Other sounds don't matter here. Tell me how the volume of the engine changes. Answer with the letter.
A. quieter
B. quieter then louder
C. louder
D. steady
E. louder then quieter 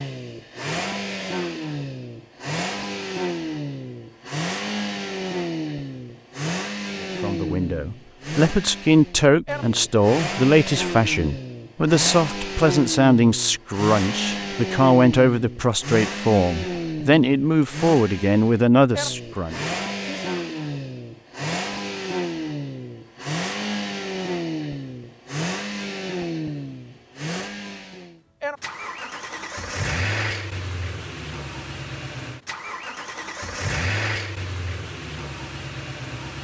D.